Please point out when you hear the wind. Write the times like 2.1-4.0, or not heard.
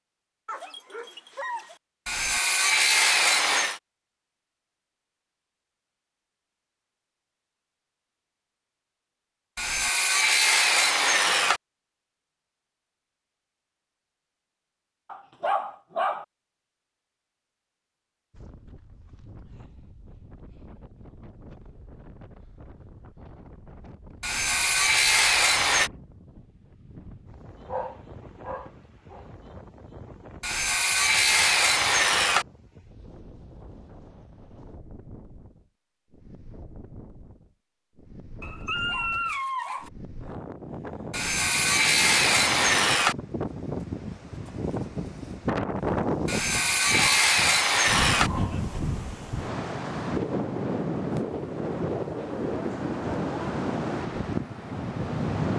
18.3-55.5.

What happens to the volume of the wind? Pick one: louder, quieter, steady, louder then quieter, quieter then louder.
louder.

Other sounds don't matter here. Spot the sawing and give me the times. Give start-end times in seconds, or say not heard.
2.0-3.8, 9.6-11.6, 24.2-25.9, 30.4-32.5, 41.1-43.1, 46.2-48.3.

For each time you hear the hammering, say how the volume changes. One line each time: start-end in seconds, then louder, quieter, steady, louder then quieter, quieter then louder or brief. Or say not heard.
not heard.